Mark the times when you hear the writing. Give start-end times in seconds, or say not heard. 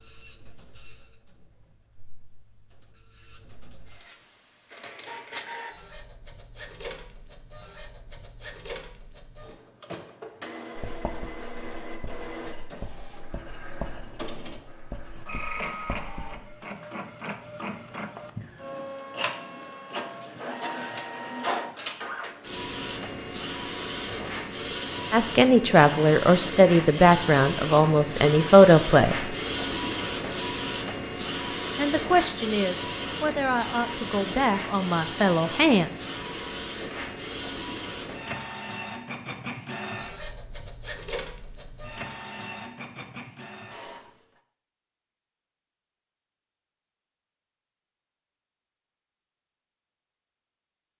10.8-16.6.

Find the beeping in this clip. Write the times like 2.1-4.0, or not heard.
not heard.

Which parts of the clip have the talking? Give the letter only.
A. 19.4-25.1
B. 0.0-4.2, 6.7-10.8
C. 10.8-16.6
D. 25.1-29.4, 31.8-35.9
D.